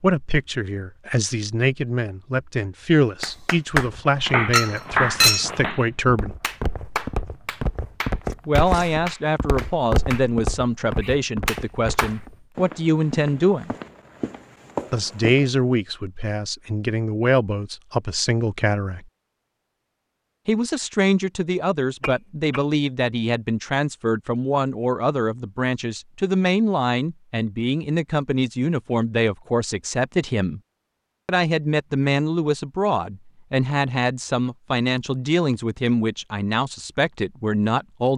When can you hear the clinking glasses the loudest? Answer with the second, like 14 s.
5 s.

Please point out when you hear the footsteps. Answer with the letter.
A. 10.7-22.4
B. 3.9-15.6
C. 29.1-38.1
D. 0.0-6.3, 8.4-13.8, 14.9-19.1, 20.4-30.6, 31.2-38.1
B.